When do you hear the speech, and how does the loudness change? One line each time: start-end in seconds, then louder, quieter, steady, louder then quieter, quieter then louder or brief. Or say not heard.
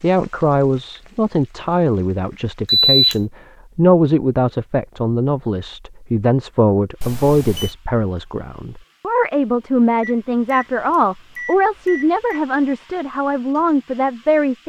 0.0-14.6 steady.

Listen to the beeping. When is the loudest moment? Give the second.
3 s.